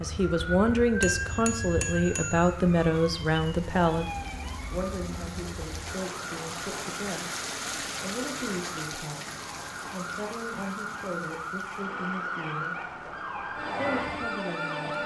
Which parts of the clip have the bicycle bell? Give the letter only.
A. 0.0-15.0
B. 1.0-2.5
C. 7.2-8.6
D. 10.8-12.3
B.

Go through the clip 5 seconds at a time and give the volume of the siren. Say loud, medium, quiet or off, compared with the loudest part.
loud, medium, loud.